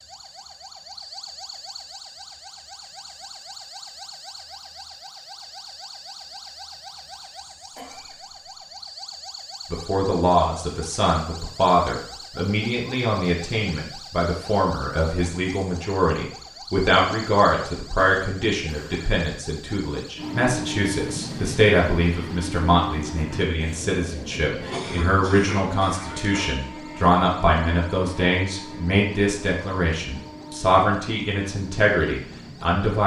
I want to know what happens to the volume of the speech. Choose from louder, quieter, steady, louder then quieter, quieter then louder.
steady.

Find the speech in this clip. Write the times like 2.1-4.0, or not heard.
9.7-33.0.